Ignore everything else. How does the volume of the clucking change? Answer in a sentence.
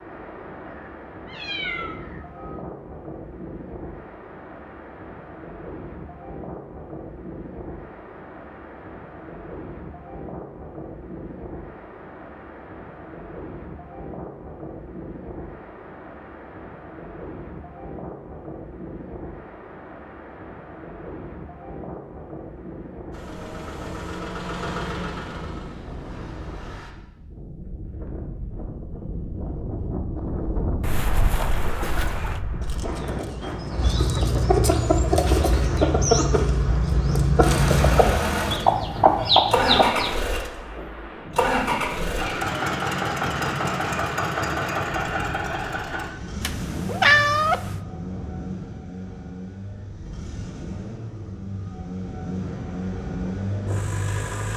The loudness of the clucking goes up.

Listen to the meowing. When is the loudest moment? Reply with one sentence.
The volume of the meowing peaks at 47 seconds.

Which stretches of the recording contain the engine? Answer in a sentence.
The engine can be heard from 23.1 to 26.9 s and from 37.4 to 54.5 s.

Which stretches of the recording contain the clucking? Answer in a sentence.
The clucking can be heard from 31.8 to 40.1 s.